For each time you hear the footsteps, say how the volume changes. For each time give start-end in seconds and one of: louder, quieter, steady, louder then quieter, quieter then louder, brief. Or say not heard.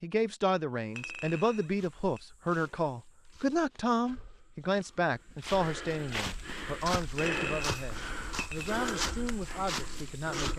0.8-10.5 louder.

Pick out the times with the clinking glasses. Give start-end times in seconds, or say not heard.
0.9-2.2, 7.2-8.8.